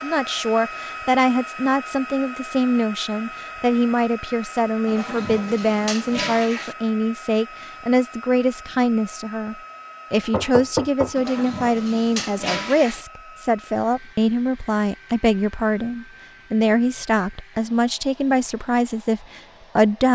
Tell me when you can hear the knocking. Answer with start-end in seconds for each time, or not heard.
10.2-11.2.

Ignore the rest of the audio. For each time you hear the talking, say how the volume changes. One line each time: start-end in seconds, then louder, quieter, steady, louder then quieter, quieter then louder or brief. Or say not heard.
0.0-20.1 steady.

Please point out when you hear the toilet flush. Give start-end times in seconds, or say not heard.
4.8-6.8, 11.2-13.1.